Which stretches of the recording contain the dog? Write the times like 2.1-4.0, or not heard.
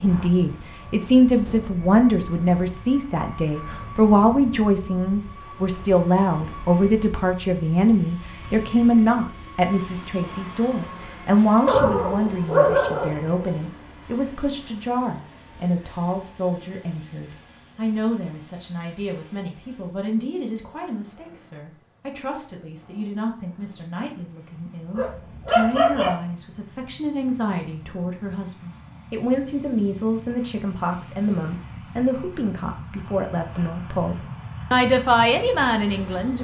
11.7-13.4, 24.9-26.1.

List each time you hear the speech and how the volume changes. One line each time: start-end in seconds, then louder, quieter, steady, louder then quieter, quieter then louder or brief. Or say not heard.
0.0-36.4 quieter then louder.